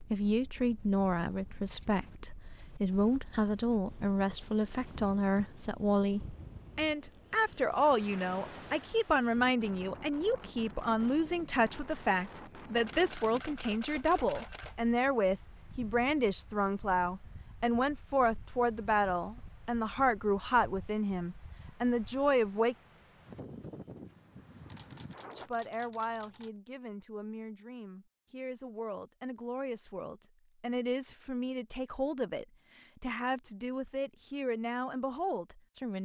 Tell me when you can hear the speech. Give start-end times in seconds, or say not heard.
0.0-22.8, 25.4-36.0.